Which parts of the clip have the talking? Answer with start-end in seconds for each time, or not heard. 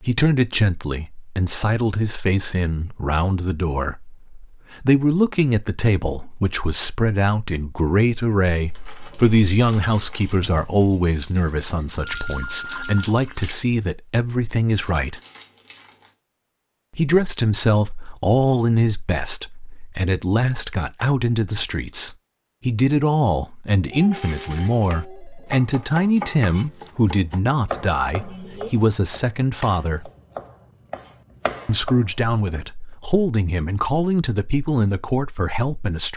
0.0-15.2, 16.9-30.1, 31.6-36.1.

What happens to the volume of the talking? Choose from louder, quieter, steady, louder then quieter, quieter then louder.
steady.